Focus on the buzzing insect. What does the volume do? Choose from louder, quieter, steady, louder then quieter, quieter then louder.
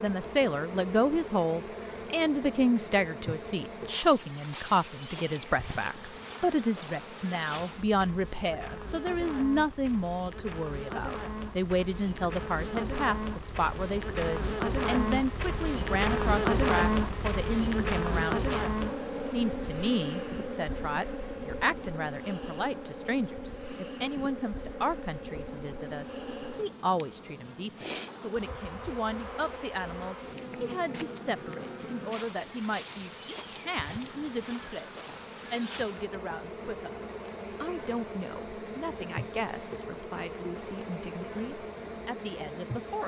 louder then quieter.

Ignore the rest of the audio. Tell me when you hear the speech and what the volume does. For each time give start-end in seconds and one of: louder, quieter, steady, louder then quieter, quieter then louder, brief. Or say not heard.
0.0-37.0 quieter
37.6-43.0 steady.